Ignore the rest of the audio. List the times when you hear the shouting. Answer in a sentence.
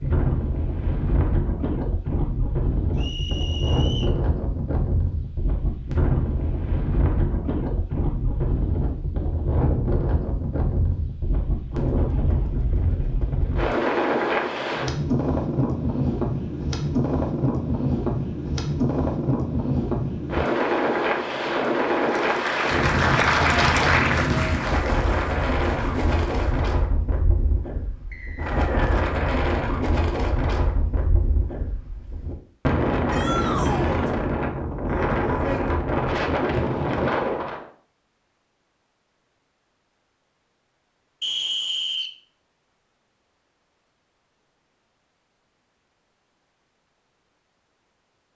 The shouting can be heard from 33.1 to 34.0 s.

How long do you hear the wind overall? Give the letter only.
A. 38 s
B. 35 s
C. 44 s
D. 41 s
A.